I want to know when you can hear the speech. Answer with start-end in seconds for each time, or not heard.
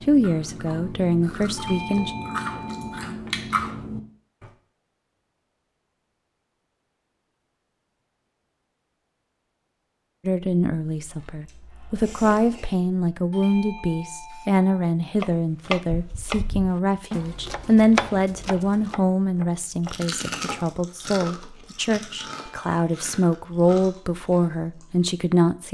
0.0-2.1, 10.2-25.6.